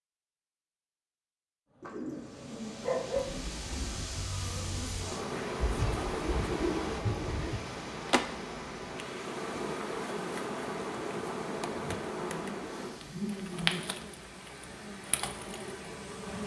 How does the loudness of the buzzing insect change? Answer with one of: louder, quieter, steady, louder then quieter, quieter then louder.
steady.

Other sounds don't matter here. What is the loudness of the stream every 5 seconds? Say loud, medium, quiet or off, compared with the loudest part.
loud, loud, medium, medium.